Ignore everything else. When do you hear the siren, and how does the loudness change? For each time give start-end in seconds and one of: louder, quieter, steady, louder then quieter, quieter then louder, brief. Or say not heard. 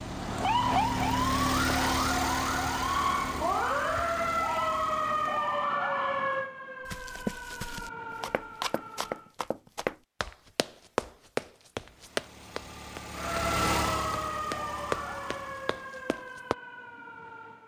0.0-9.3 quieter
13.2-17.6 quieter.